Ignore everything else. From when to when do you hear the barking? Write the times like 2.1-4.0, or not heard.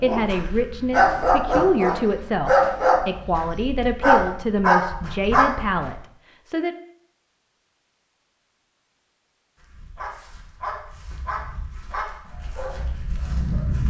0.0-6.0, 9.6-13.8.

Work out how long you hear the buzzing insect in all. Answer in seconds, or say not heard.
not heard.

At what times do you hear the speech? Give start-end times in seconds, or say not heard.
0.0-6.8.